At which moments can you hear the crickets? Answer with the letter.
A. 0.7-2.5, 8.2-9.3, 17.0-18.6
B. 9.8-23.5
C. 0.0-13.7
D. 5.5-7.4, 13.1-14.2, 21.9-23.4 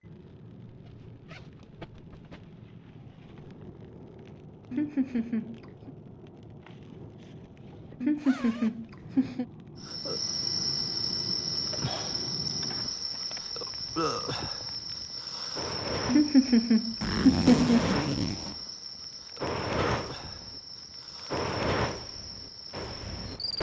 B.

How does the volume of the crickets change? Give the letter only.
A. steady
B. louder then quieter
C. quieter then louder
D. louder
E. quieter
E.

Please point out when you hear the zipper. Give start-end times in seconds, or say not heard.
0.7-2.5, 8.2-9.3, 17.0-18.6.